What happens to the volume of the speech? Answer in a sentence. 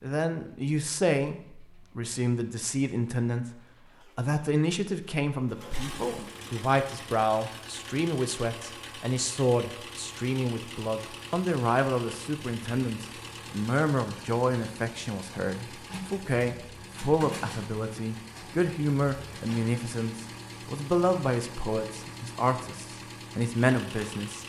The loudness of the speech stays about the same.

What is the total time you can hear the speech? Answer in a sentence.
The speech can be heard for 24 seconds in total.